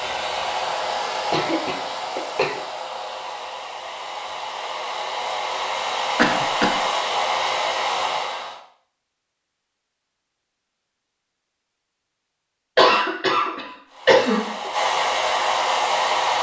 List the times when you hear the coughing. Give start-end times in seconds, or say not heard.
1.3-2.6, 6.2-6.8, 12.8-14.7.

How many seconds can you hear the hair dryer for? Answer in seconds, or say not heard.
11 s.